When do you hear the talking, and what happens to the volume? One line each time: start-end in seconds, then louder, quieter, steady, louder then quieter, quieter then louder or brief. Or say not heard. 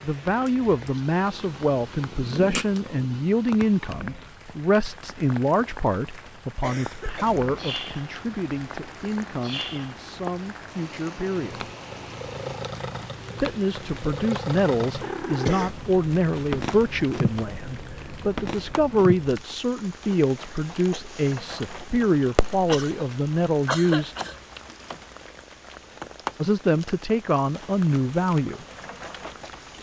0.0-11.7 quieter
13.4-24.1 steady
26.4-28.6 brief.